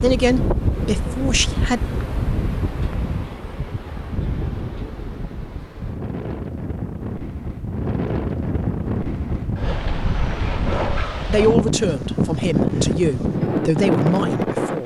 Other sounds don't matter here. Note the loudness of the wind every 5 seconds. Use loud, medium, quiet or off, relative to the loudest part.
medium, medium, loud.